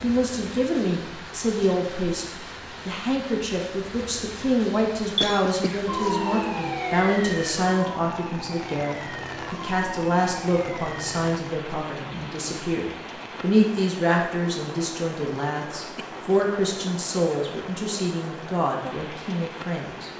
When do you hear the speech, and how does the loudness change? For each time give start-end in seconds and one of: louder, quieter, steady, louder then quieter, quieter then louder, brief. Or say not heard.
0.0-20.1 steady.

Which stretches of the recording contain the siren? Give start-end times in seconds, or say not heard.
5.8-11.3.